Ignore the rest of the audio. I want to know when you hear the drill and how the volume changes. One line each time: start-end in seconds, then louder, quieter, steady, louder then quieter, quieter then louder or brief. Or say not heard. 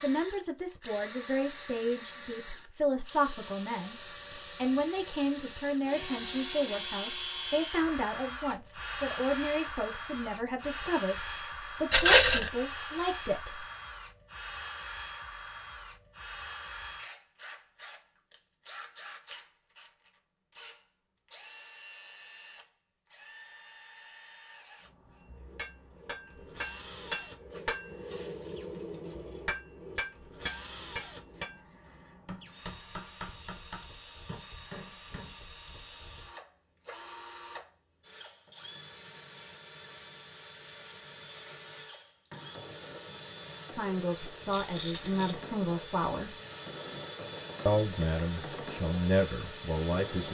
0.0-50.2 quieter then louder.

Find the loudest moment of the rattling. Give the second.
12 s.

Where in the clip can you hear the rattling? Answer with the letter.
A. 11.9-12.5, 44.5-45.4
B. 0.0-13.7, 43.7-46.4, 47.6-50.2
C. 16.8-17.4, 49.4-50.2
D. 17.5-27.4
A.